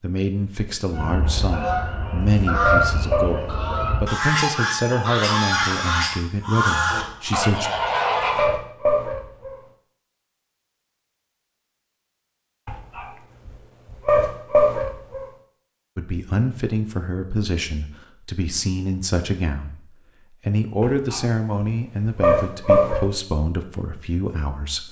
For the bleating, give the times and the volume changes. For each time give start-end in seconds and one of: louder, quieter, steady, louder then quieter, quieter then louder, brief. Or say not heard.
not heard.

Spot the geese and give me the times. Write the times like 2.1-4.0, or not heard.
0.9-8.5.